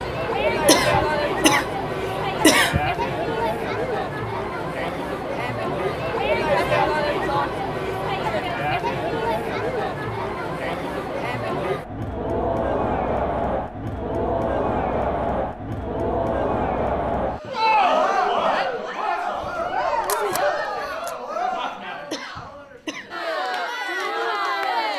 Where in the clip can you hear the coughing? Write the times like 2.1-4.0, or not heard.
0.7-3.0, 22.1-23.1.